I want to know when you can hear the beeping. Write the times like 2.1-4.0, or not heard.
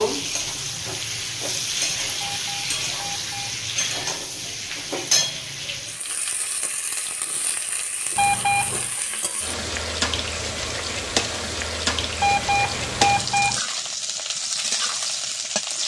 2.1-3.6, 8.2-8.9, 12.2-13.6.